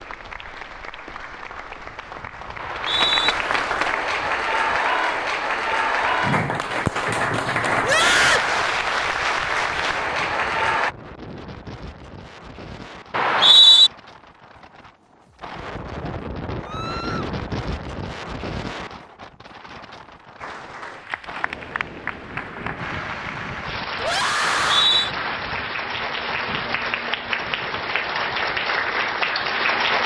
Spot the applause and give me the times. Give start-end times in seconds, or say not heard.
0.0-10.9, 20.4-30.0.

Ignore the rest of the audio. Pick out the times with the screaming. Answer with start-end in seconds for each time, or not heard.
7.8-8.5, 16.6-17.3, 23.9-24.9.